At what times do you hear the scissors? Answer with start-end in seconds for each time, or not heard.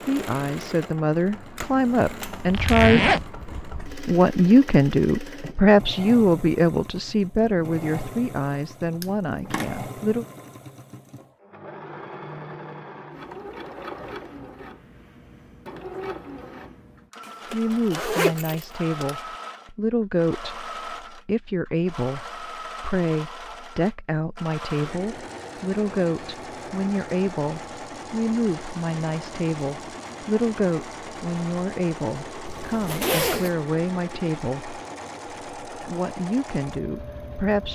9.0-9.8.